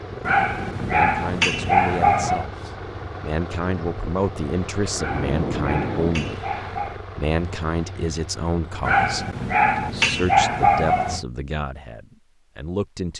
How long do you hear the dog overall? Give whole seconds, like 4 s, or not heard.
7 s.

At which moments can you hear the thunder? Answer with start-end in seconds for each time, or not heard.
4.9-6.3.